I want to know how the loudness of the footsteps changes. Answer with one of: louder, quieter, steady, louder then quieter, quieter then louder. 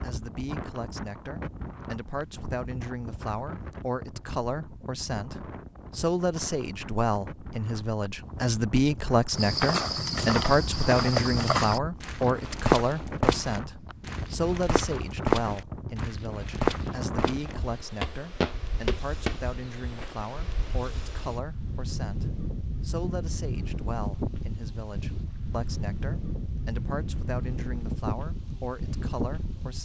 steady.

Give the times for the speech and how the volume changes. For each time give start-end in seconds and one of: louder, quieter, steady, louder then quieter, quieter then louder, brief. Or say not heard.
0.0-29.8 louder then quieter.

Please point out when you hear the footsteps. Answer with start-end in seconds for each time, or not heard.
9.3-20.1.